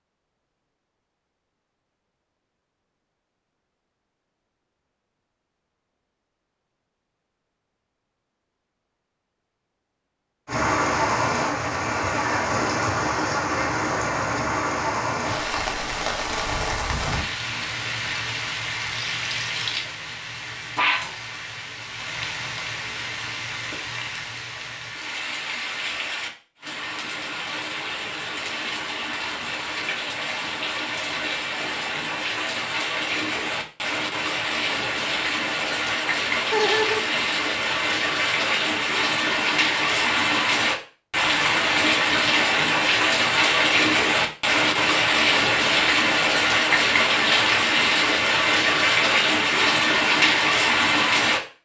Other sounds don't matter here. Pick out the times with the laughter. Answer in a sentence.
You can hear the laughter from 36.5 to 37.0 s.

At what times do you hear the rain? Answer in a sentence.
The rain can be heard from 10.4 to 51.4 s.